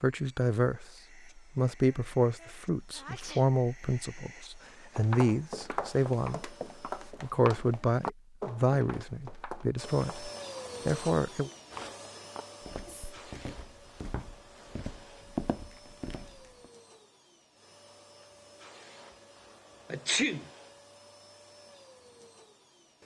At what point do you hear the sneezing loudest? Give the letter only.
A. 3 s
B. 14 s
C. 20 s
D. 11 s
C.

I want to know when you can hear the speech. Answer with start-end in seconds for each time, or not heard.
0.0-11.5.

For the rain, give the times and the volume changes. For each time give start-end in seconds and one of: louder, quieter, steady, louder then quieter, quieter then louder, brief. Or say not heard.
not heard.